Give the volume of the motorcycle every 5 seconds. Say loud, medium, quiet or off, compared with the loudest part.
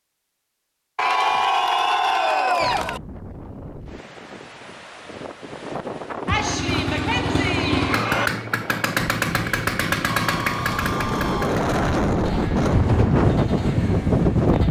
off, loud, medium.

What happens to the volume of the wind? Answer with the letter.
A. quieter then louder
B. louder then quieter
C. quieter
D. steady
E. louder
E.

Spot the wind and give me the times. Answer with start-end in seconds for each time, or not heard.
2.6-14.6.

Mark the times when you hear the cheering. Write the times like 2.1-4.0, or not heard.
0.9-3.0, 6.2-8.3, 10.1-11.7.